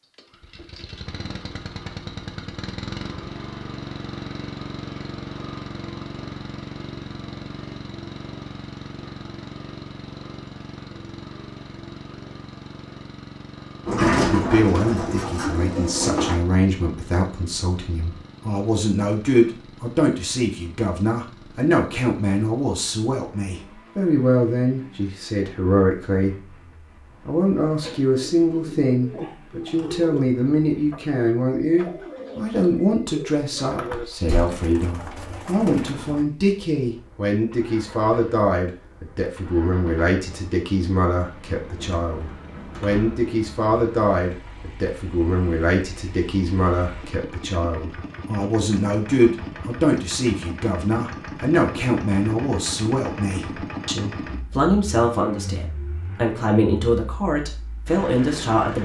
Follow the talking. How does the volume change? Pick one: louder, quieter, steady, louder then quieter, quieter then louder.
steady.